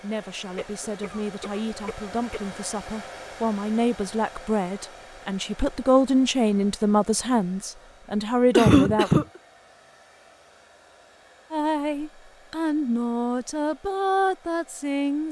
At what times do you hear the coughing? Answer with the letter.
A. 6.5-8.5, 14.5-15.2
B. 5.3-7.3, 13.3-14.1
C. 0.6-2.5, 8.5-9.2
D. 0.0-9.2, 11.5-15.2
C.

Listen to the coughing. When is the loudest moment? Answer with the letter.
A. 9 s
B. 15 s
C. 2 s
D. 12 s
A.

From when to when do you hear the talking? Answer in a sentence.
You can hear the talking from 0.0 to 9.2 s and from 11.5 to 15.2 s.